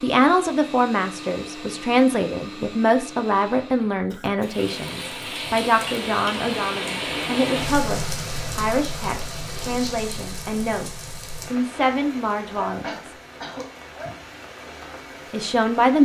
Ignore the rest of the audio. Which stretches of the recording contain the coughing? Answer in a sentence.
The coughing can be heard from 4.1 to 4.7 s and from 12.8 to 14.1 s.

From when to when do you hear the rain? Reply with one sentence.
The rain can be heard from 4.4 to 16.0 s.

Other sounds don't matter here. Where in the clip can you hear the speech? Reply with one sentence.
You can hear the speech from 0.0 to 13.2 s and from 15.3 to 16.0 s.